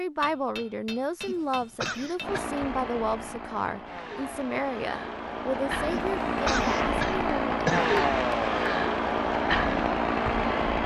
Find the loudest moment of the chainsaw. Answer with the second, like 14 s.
8 s.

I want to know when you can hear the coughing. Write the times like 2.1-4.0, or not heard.
1.2-2.5, 5.9-7.8.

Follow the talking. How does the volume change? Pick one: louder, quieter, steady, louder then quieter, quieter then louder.
steady.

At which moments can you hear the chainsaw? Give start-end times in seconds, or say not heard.
2.2-10.8.